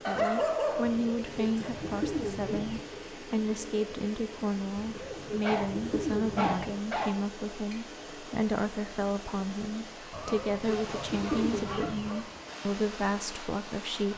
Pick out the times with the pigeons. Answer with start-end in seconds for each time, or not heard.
0.8-2.9, 4.8-6.8, 10.1-12.1.